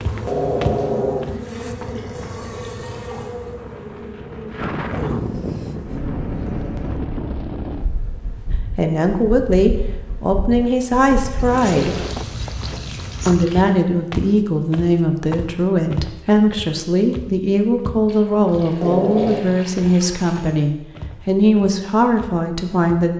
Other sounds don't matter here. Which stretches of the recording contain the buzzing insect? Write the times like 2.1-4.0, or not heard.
0.0-6.0.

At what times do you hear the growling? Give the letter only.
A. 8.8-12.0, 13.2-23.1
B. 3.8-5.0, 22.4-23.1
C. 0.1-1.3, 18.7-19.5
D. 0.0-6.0
C.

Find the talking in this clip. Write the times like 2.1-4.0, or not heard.
8.8-12.0, 13.2-23.1.